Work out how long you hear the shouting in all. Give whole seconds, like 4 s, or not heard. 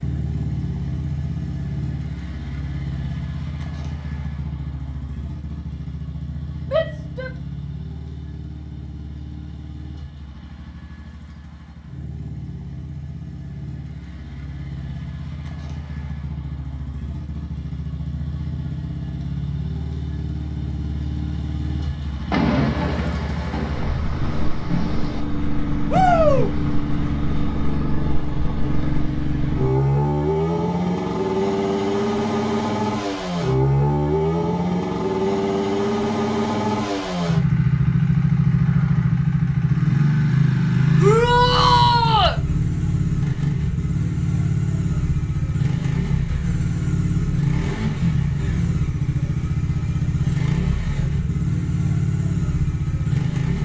3 s.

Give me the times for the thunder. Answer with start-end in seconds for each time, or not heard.
22.3-25.2.